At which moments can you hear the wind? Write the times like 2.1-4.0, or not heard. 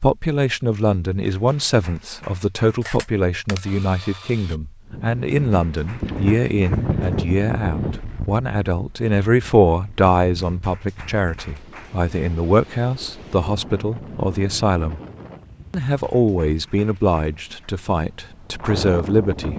4.9-19.5.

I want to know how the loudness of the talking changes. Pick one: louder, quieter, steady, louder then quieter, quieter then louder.
steady.